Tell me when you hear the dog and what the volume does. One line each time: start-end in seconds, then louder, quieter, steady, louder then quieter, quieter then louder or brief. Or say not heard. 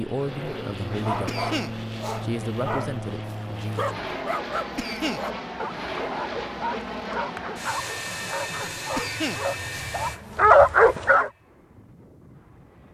0.2-3.0 brief
3.8-11.3 louder.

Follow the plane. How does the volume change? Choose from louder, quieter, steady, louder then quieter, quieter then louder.
quieter.